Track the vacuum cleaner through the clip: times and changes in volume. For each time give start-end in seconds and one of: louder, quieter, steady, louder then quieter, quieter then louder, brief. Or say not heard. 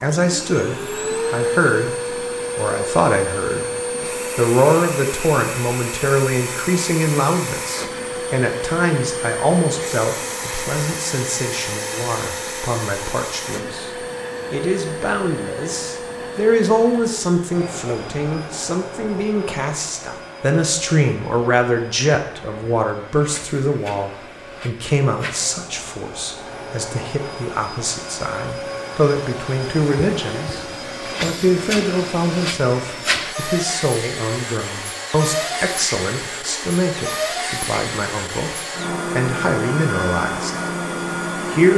0.0-41.7 quieter then louder.